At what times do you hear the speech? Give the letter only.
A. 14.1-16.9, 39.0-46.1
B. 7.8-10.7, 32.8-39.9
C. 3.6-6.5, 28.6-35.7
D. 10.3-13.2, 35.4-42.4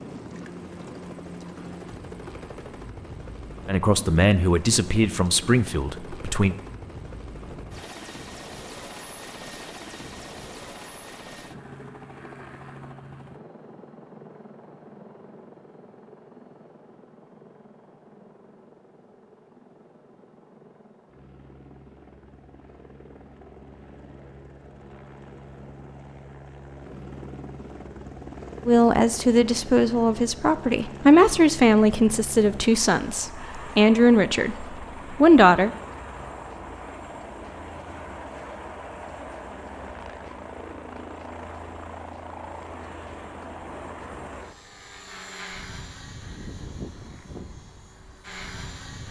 C.